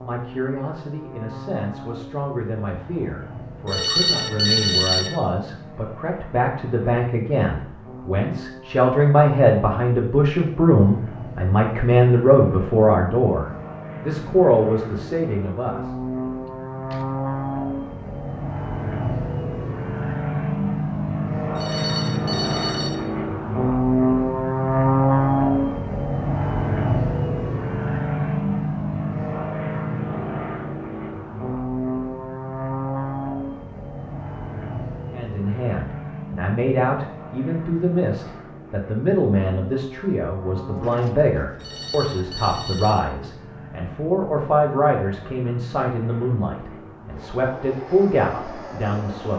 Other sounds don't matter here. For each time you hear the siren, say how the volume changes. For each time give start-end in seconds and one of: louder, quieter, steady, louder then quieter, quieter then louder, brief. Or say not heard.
not heard.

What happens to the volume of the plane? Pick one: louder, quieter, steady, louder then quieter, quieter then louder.
louder then quieter.